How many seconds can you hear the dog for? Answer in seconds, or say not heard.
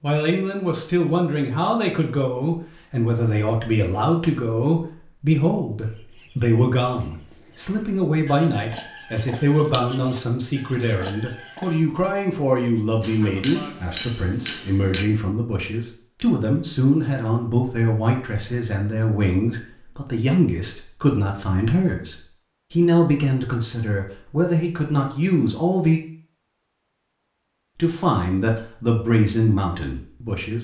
not heard.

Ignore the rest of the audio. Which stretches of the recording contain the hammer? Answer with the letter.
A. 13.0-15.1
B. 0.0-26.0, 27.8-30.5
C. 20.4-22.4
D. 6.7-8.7
A.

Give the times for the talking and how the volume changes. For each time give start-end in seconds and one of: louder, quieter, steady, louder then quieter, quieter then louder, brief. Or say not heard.
0.0-26.0 steady
27.8-30.5 brief.